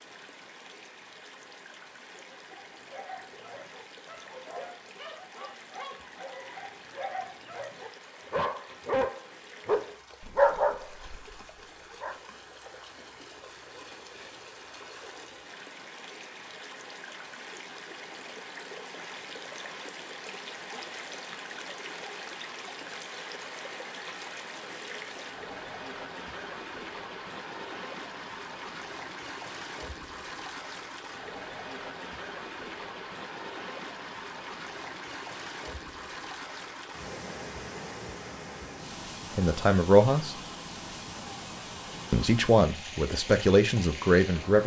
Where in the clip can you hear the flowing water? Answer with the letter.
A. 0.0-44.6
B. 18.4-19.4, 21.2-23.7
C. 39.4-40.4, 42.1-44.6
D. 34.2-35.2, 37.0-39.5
A.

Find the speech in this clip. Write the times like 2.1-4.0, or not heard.
39.4-40.4, 42.1-44.6.